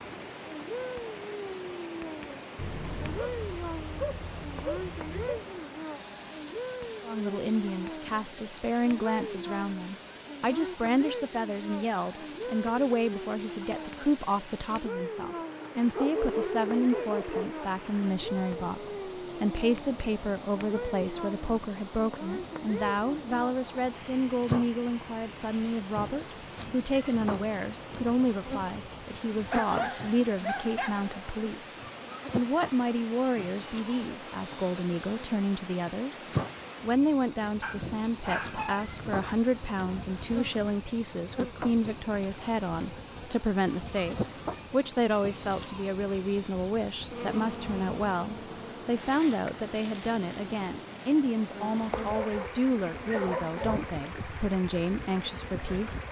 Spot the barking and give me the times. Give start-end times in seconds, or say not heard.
2.5-5.5, 15.9-17.6, 29.5-31.1, 37.6-39.4, 51.9-53.9.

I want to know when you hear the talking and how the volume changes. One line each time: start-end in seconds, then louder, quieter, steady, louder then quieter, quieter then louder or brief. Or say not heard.
7.0-56.0 steady.